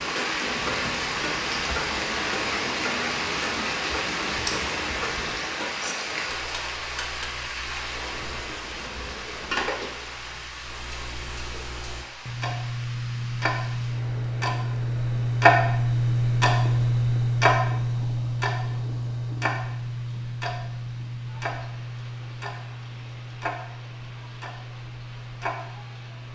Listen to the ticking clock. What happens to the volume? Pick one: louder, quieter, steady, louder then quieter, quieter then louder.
louder then quieter.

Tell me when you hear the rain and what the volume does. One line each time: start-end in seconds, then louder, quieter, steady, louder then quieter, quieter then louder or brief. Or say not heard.
0.0-26.3 quieter.